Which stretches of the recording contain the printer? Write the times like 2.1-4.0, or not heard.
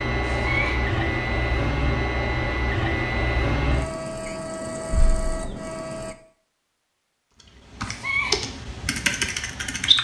0.0-6.2.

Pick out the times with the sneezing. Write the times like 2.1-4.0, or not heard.
0.2-0.8, 7.8-8.4.